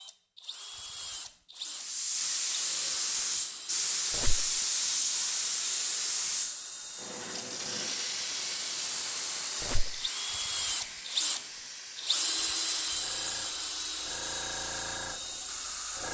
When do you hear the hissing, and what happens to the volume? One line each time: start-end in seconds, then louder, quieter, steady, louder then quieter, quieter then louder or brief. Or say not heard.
1.7-16.0 quieter.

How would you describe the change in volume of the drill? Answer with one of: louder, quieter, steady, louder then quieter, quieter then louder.
louder.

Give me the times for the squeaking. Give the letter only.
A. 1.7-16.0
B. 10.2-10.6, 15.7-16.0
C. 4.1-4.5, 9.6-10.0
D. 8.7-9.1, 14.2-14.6
C.